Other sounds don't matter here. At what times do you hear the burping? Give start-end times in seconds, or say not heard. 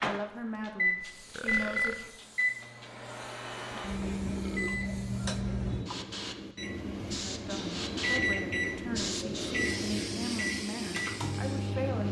0.8-2.2, 4.2-4.8, 9.2-9.8.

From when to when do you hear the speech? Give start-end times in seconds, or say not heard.
0.0-1.9, 7.3-12.0.